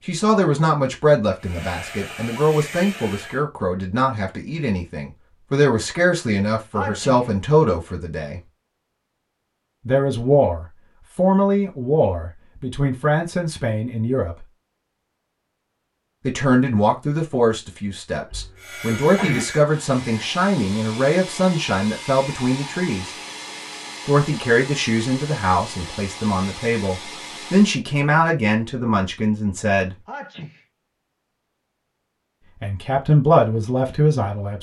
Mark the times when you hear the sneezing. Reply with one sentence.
You can hear the sneezing from 6.8 to 7.3 s, from 18.3 to 19.4 s and from 30.1 to 30.6 s.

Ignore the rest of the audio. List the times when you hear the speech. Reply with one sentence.
The speech can be heard from 0.1 to 8.4 s, from 9.8 to 14.4 s, from 16.2 to 23.1 s, from 24.1 to 29.9 s and from 32.6 to 34.5 s.